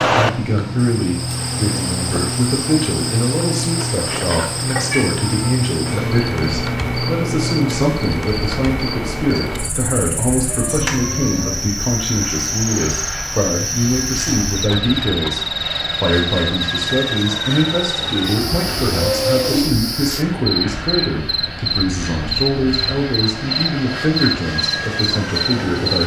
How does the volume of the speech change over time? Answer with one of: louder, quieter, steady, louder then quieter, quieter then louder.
steady.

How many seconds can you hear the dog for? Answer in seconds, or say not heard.
not heard.